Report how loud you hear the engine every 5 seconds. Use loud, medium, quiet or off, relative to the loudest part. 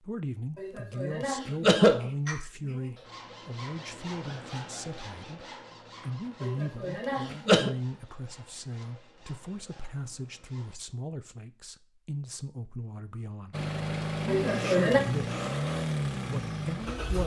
off, off, loud, loud.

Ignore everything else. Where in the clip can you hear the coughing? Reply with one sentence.
You can hear the coughing from 0.6 to 2.8 s, from 6.4 to 7.7 s and from 14.2 to 15.0 s.